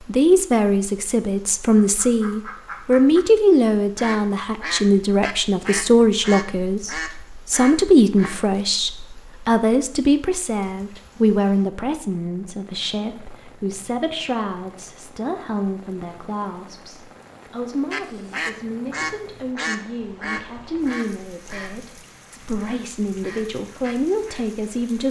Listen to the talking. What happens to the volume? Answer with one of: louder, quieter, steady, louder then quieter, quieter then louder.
quieter.